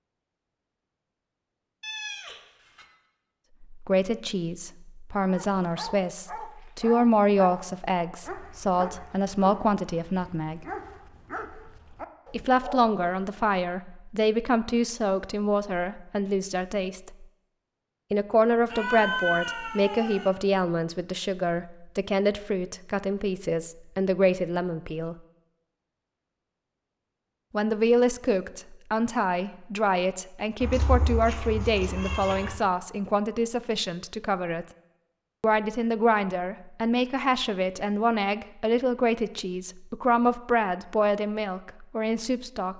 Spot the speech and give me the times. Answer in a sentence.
The speech can be heard from 3.7 to 10.6 s, from 12.3 to 17.2 s, from 18.1 to 25.1 s, from 27.5 to 34.6 s and from 35.4 to 42.7 s.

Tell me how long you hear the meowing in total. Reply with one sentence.
You can hear the meowing for 5 seconds altogether.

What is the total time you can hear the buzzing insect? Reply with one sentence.
The buzzing insect can't be heard in this clip.